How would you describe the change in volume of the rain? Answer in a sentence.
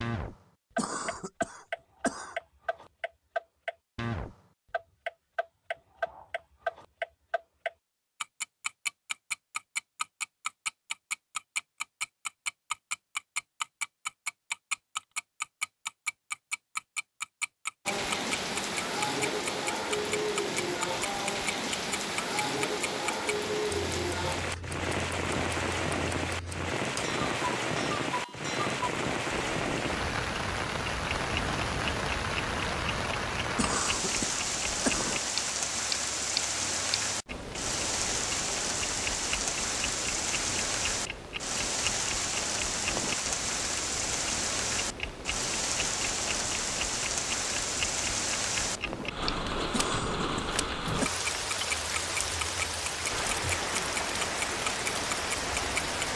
The loudness of the rain stays about the same.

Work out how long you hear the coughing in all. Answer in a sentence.
You can hear the coughing for 5 seconds altogether.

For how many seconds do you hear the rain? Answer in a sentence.
You can hear the rain for 38 seconds altogether.